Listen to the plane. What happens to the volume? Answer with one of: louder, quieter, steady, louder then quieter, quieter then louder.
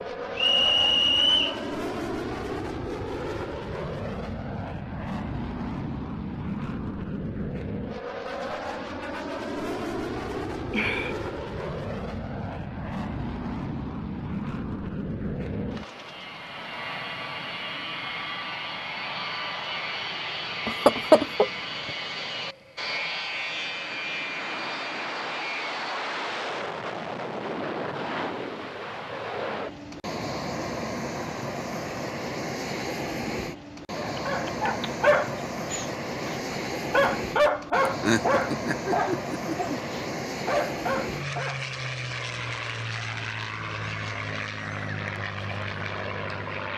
steady.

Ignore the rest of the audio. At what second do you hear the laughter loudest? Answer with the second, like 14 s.
21 s.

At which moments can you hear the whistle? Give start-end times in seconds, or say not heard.
0.3-1.6.